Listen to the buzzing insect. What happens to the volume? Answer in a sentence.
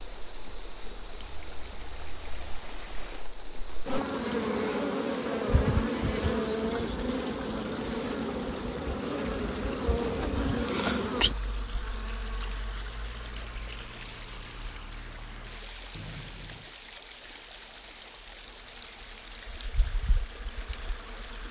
The loudness of the buzzing insect goes down.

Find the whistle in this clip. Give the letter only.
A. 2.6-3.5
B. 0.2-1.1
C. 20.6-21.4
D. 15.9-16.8
D.